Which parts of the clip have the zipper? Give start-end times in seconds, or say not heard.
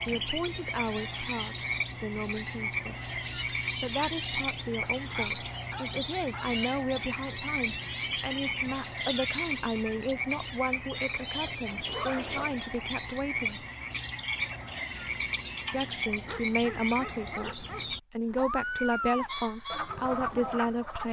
11.4-12.7.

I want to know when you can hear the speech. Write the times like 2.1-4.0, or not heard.
0.1-13.7, 15.7-21.0.